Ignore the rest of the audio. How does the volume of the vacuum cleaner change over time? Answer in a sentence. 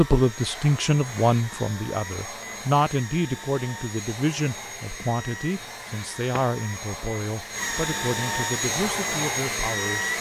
The volume of the vacuum cleaner goes up.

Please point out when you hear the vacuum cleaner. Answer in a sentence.
You can hear the vacuum cleaner from 0.0 to 10.1 s.